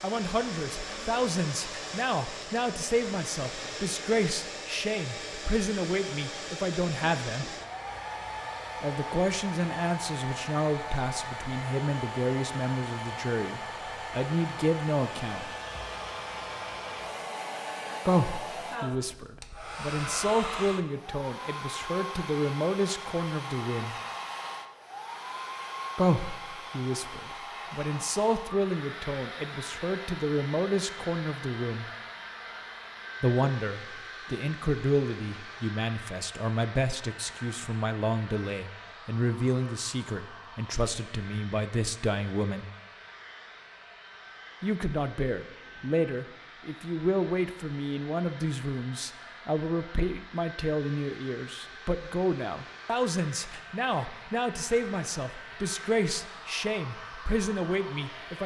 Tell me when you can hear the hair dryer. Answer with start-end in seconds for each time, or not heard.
0.0-58.4.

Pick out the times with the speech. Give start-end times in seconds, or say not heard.
0.0-7.5, 8.8-15.5, 18.1-23.9, 25.9-31.9, 33.2-42.6, 44.6-58.4.